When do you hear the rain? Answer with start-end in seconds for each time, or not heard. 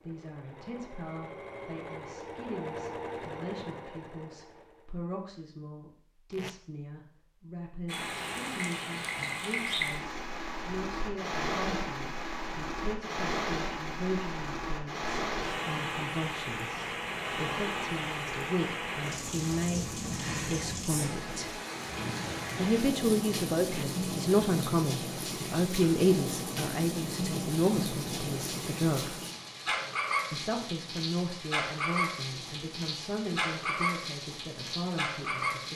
7.8-35.7.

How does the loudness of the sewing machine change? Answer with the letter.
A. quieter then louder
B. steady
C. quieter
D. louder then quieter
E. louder
D.